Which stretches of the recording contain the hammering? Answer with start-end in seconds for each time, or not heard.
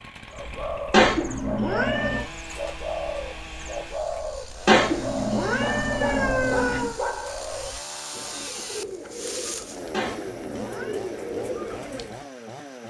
not heard.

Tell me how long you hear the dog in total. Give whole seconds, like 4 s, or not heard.
2 s.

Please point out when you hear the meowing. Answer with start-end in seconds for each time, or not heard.
0.9-2.2, 4.7-7.0, 9.9-11.0.